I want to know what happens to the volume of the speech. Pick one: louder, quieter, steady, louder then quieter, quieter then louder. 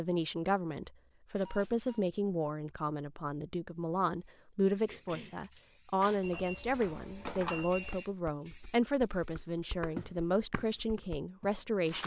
steady.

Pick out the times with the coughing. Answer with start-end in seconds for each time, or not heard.
4.8-5.4.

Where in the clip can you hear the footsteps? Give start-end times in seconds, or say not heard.
9.9-10.8, 11.4-12.0.